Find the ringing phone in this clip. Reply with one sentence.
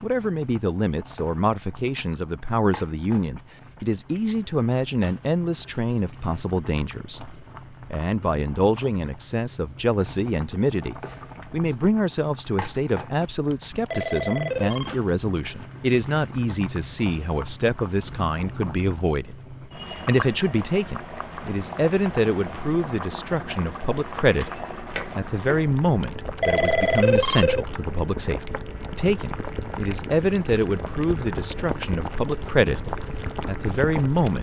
You can hear the ringing phone from 13.5 to 14.9 s and from 26.0 to 27.6 s.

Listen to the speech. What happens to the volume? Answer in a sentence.
The volume of the speech stays about the same.